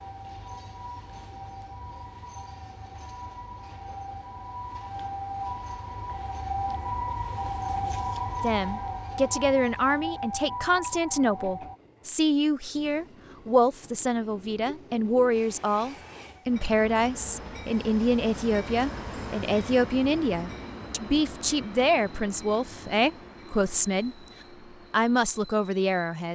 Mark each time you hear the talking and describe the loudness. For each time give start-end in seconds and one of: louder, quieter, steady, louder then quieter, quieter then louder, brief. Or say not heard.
8.4-24.1 steady
24.9-26.3 brief.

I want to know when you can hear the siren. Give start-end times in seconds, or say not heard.
0.0-11.8.